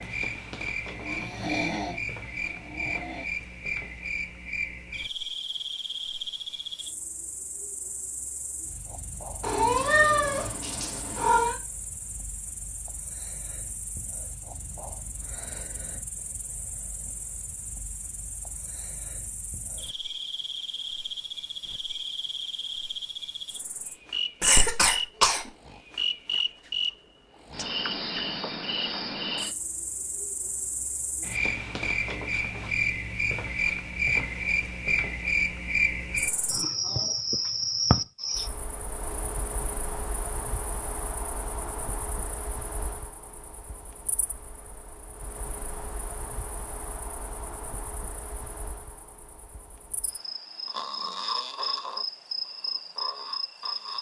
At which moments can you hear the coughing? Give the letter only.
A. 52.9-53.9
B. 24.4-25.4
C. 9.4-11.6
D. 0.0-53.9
B.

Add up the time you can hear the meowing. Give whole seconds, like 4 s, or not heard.
2 s.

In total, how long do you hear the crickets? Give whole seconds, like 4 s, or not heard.
54 s.